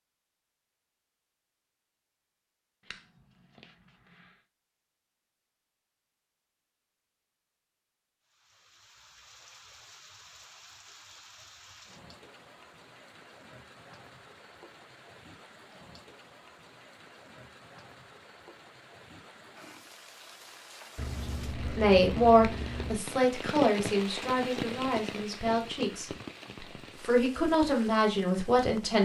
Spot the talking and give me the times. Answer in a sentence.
You can hear the talking from 21.6 to 29.0 s.